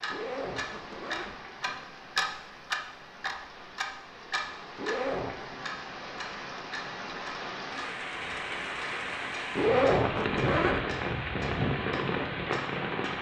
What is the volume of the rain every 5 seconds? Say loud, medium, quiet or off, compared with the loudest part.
quiet, medium, loud.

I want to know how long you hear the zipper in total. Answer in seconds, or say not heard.
3 s.